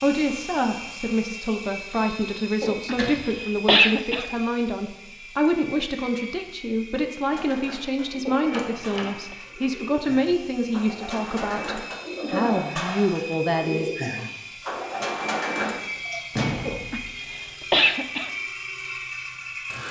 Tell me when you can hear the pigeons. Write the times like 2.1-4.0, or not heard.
7.3-16.2.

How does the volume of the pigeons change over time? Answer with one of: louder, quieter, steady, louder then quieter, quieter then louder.
louder.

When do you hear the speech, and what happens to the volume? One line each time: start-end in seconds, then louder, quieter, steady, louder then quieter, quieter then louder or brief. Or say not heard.
0.0-13.9 steady.